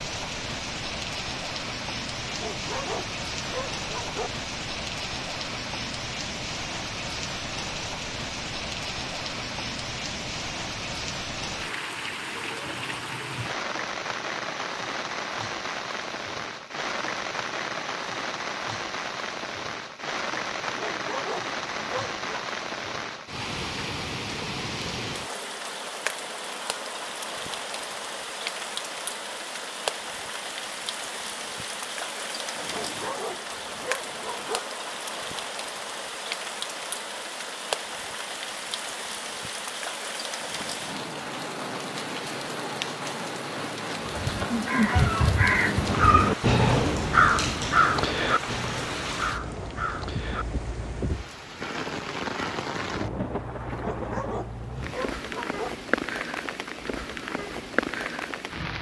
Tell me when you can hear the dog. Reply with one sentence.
You can hear the dog from 2.2 to 4.3 s, from 20.6 to 22.4 s, from 32.6 to 34.6 s and from 53.6 to 55.7 s.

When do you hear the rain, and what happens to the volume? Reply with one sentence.
You can hear the rain from 0.0 to 58.7 s, at a steady volume.